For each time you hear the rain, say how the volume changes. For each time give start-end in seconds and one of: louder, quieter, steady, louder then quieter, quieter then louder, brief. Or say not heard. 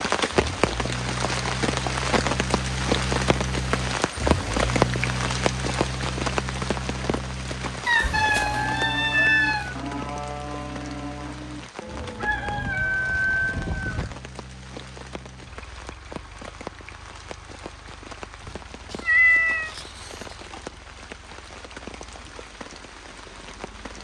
0.0-23.9 quieter.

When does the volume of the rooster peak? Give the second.
13 s.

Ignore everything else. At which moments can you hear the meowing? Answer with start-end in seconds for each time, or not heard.
7.8-9.7, 18.4-20.1.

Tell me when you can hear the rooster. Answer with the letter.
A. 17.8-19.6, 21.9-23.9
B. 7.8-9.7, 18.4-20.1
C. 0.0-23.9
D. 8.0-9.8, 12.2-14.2
D.